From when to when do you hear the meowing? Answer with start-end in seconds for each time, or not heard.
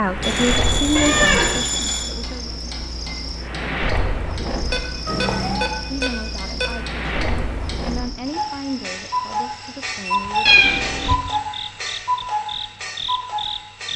0.9-1.6, 5.0-5.7, 10.4-11.2.